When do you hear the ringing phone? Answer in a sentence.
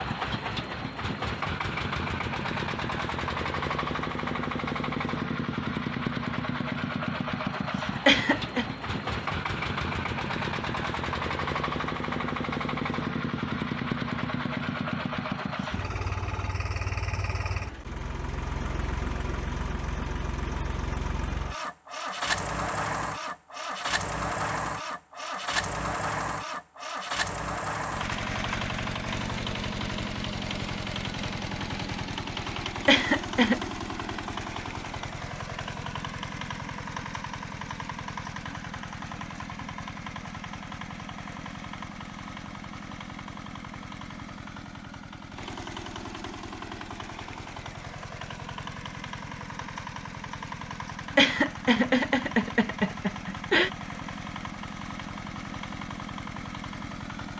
You can't hear the ringing phone here.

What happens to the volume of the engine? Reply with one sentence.
The volume of the engine goes down.